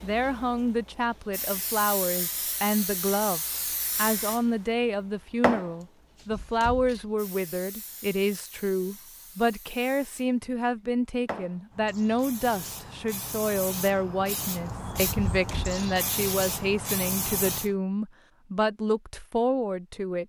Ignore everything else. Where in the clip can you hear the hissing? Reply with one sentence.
You can hear the hissing from 0.0 to 17.8 s.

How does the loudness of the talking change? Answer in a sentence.
The volume of the talking stays about the same.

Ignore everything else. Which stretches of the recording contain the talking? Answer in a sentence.
You can hear the talking from 0.0 to 20.2 s.